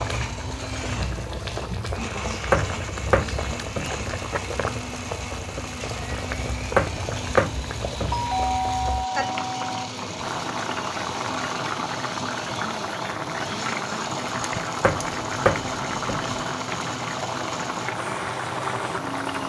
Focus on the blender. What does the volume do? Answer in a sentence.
The loudness of the blender stays about the same.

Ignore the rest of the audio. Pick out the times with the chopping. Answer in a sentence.
You can hear the chopping from 2.5 to 4.1 s, from 6.8 to 8.3 s and from 14.8 to 16.4 s.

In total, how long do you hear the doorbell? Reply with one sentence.
The doorbell can be heard for 2 seconds in total.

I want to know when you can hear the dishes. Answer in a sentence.
The dishes can't be heard in this clip.